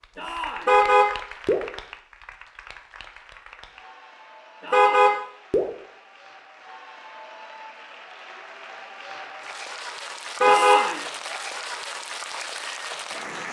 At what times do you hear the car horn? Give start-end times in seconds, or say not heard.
0.7-1.6, 4.7-5.7, 10.4-10.8.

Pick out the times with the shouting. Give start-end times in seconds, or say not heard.
0.1-0.8, 4.6-5.2, 10.4-11.1.